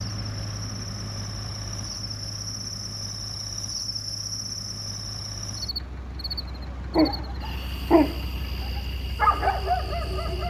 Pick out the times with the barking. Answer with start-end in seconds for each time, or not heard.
6.9-10.4.